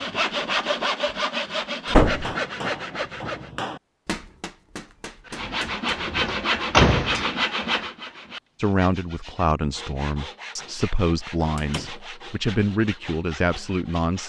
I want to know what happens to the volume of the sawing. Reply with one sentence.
The loudness of the sawing goes down.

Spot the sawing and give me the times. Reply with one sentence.
The sawing can be heard from 0.0 to 3.5 s and from 5.2 to 14.2 s.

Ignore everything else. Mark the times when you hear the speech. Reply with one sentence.
You can hear the speech from 8.6 to 14.2 s.